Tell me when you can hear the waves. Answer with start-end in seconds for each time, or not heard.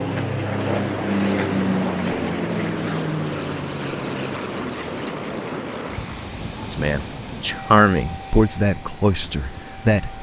0.1-10.1.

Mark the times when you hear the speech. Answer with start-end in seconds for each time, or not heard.
6.7-10.1.